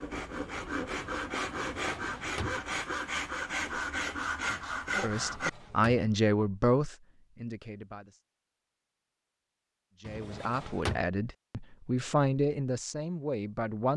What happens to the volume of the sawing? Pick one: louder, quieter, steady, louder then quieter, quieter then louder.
steady.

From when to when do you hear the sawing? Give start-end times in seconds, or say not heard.
0.0-5.5.